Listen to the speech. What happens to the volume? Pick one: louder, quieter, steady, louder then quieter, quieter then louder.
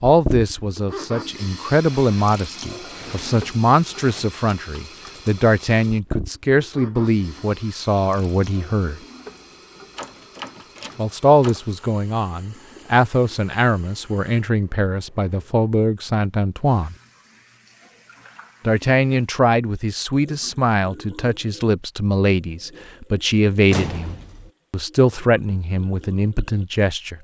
steady.